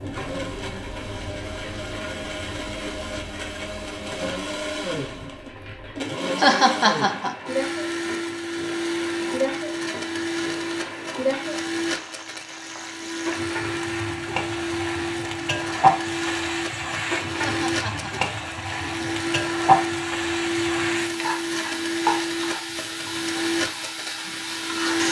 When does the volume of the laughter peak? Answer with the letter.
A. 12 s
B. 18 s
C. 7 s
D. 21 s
C.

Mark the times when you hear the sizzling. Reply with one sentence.
You can hear the sizzling from 0.0 to 25.0 s.